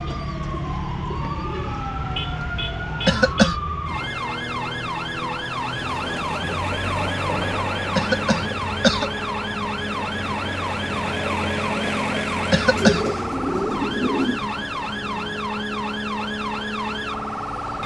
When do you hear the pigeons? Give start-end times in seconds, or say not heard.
0.0-1.9, 12.7-14.4.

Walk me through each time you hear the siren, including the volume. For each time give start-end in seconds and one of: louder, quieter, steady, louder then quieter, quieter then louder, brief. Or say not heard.
0.0-17.8 steady.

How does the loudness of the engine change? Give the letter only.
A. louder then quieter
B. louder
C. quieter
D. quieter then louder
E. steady
D.